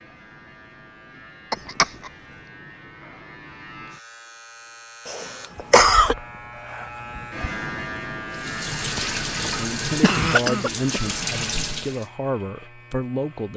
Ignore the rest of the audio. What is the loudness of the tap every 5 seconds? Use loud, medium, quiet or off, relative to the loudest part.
off, loud, loud.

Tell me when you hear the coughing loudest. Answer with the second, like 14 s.
6 s.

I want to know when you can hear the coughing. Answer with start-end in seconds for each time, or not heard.
1.5-2.1, 5.0-6.2, 10.0-11.1.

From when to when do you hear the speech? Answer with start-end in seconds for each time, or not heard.
9.4-13.5.